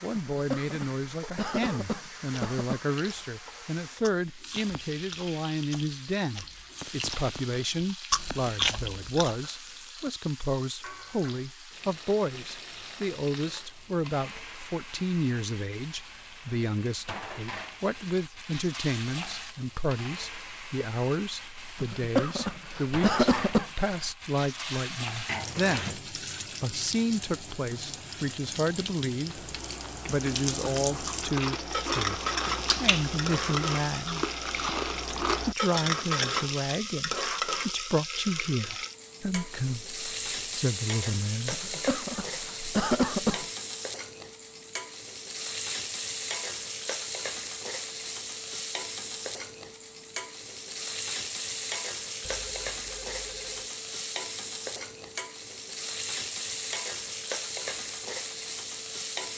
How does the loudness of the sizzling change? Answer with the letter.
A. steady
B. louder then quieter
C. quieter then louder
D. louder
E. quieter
D.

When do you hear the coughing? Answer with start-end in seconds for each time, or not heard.
0.1-2.8, 21.8-23.7, 41.5-43.5.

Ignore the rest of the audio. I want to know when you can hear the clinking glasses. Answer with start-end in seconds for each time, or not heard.
not heard.